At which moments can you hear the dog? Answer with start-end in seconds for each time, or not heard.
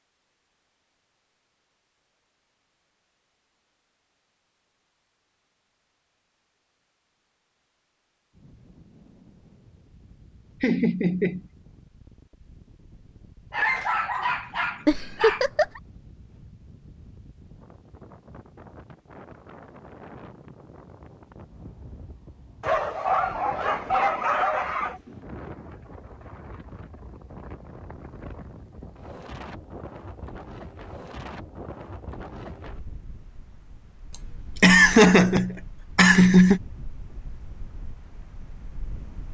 13.5-15.4, 22.6-25.0.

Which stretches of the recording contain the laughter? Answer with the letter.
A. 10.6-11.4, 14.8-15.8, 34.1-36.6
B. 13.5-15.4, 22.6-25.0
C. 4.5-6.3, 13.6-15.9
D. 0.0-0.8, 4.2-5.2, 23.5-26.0
A.